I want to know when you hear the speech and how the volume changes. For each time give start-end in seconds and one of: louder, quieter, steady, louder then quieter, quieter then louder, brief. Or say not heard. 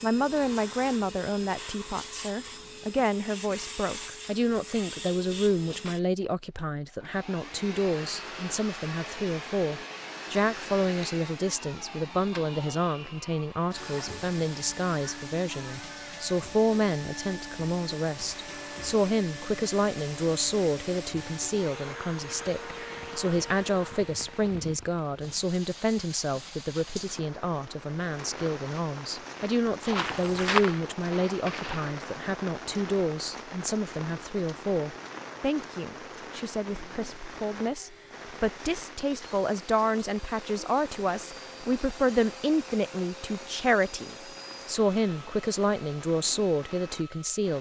0.0-47.5 steady.